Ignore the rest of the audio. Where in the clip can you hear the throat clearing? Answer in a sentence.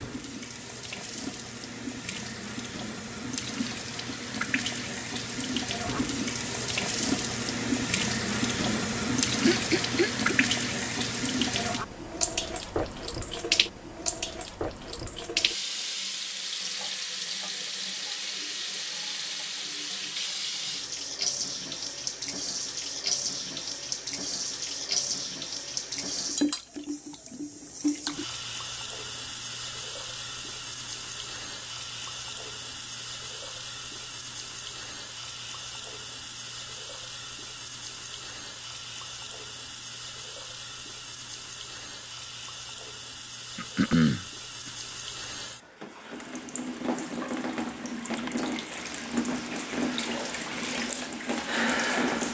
The throat clearing can be heard from 9.4 to 10.3 s and from 43.5 to 44.7 s.